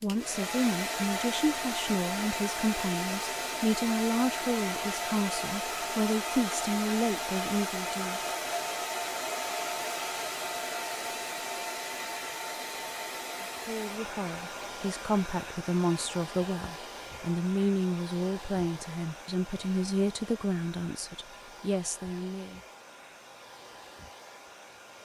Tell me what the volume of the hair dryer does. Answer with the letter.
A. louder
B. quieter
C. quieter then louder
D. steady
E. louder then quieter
B.